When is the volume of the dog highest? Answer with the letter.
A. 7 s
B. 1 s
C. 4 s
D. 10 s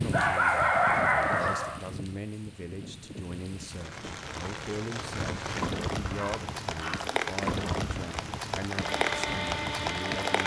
B.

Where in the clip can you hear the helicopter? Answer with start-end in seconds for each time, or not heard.
8.8-10.4.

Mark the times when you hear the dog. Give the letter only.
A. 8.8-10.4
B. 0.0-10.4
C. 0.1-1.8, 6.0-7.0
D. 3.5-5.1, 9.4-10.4
C.